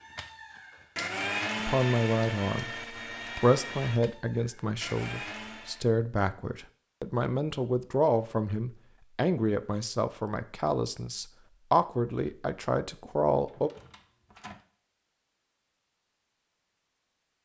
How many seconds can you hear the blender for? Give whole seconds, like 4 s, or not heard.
6 s.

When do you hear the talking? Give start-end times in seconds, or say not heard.
1.6-13.7.